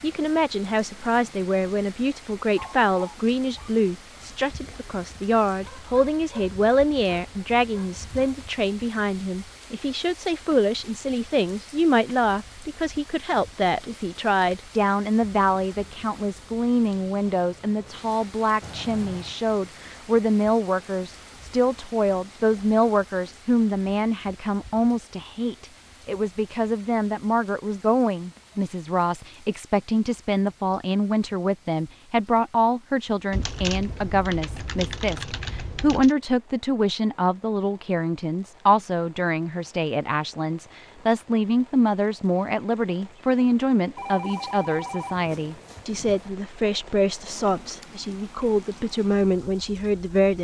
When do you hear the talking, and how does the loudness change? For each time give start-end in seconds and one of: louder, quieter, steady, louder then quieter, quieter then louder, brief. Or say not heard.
0.0-50.3 steady.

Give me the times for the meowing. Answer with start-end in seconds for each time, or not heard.
not heard.